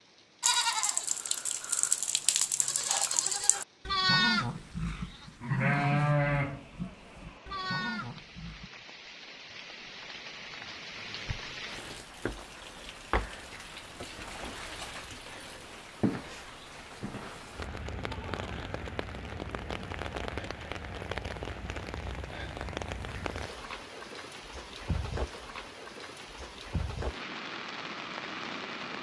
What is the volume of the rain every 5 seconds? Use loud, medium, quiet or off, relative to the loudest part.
quiet, medium, loud, loud, loud, loud.